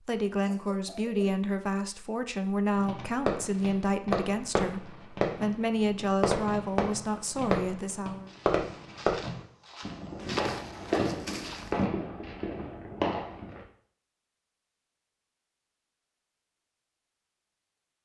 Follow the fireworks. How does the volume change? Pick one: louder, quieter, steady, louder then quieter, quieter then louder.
steady.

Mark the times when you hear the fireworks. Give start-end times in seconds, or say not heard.
2.8-13.6.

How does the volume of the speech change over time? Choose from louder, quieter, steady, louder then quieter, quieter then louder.
steady.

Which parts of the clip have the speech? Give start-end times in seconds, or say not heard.
0.1-8.3.